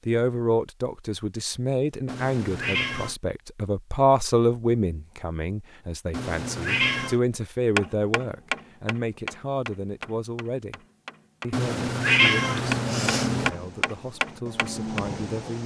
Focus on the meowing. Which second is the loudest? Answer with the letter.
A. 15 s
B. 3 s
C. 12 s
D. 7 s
C.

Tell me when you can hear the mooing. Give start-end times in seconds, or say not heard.
12.7-15.6.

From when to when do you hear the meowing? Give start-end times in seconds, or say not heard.
2.0-3.1, 6.1-7.2, 11.5-13.5.